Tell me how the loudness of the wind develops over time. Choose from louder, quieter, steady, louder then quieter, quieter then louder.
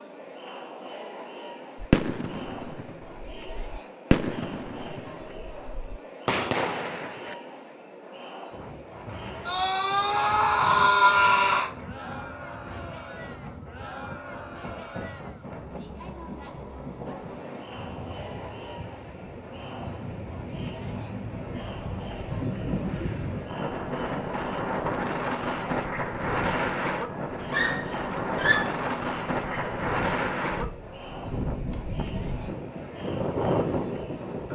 louder.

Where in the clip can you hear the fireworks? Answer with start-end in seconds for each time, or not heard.
1.8-7.3.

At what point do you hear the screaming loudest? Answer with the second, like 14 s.
11 s.